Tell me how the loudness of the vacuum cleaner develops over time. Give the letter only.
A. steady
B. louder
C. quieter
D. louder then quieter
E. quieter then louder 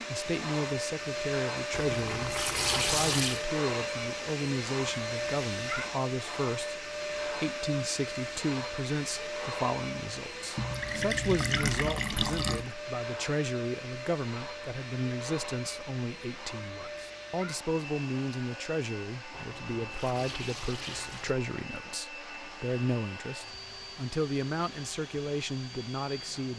C.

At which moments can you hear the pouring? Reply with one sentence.
You can hear the pouring from 1.7 to 3.5 s, from 10.6 to 12.7 s and from 19.3 to 21.4 s.